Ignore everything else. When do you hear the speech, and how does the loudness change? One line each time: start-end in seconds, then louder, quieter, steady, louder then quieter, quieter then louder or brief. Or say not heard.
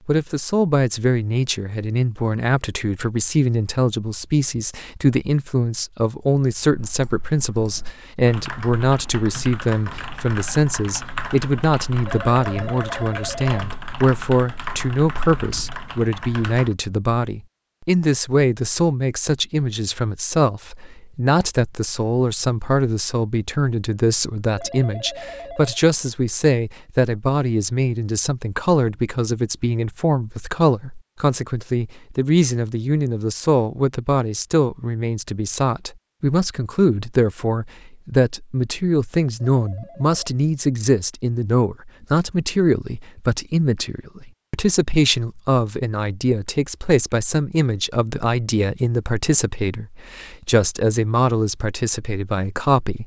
0.1-53.0 steady.